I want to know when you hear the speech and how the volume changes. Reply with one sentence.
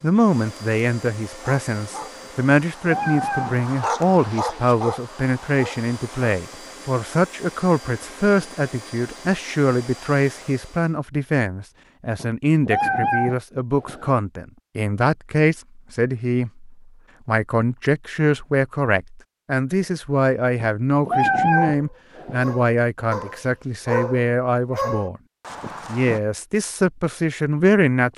You can hear the speech from 0.0 to 25.2 s, at a steady volume; and briefly from 25.9 to 28.1 s.